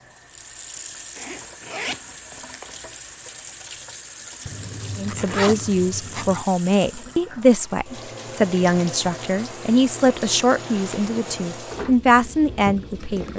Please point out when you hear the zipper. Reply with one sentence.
You can hear the zipper from 1.1 to 2.8 s, from 4.5 to 6.5 s and from 10.6 to 11.2 s.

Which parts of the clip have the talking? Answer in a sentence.
The talking can be heard from 5.0 to 13.3 s.